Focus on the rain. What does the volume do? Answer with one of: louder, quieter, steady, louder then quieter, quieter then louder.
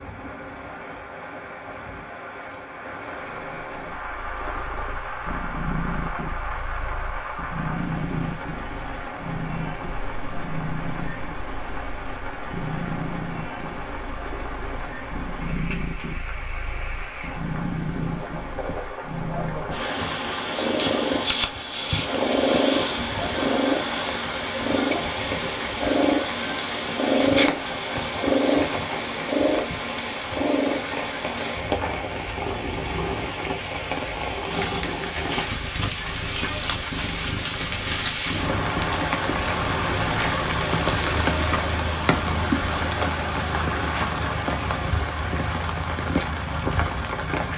louder.